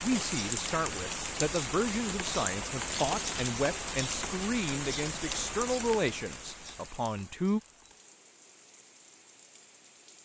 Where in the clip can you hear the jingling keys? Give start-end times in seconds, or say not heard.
2.9-3.5.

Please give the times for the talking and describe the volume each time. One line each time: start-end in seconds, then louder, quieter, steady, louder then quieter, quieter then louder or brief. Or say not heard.
0.0-7.6 steady.